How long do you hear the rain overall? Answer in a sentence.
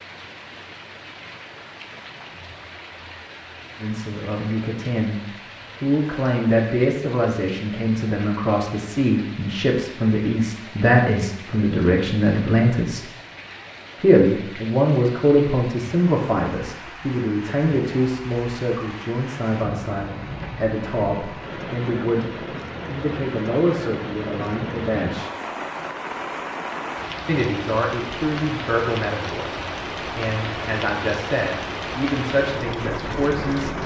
You can hear the rain for 34 seconds altogether.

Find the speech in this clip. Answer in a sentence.
You can hear the speech from 3.8 to 5.2 s, from 5.8 to 13.1 s, from 14.0 to 25.3 s and from 27.2 to 33.8 s.